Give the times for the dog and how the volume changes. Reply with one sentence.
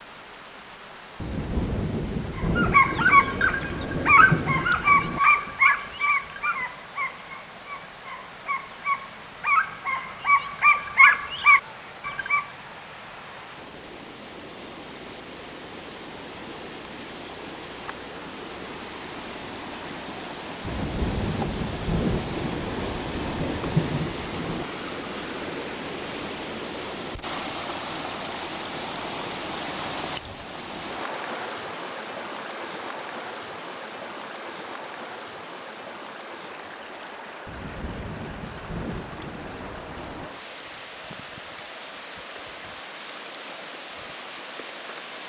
The dog can be heard from 2.4 to 12.4 s, getting quieter then louder.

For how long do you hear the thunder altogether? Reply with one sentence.
You can hear the thunder for 11 seconds altogether.